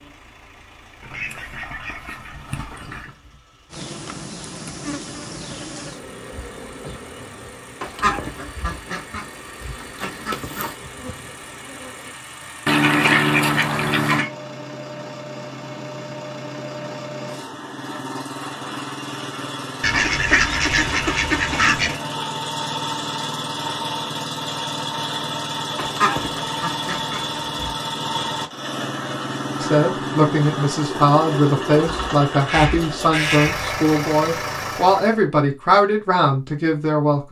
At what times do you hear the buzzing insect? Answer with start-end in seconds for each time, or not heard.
3.7-12.2.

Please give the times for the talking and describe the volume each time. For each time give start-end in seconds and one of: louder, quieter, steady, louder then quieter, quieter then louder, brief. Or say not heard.
29.6-37.2 steady.